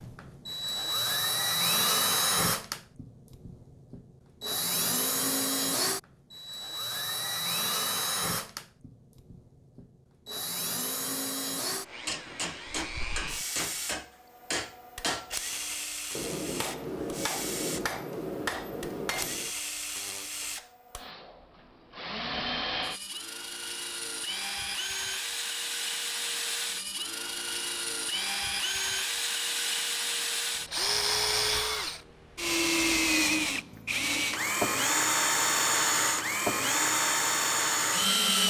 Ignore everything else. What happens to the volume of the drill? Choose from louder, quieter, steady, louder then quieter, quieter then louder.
quieter then louder.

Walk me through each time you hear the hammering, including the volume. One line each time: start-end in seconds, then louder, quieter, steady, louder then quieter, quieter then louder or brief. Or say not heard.
12.1-19.5 steady.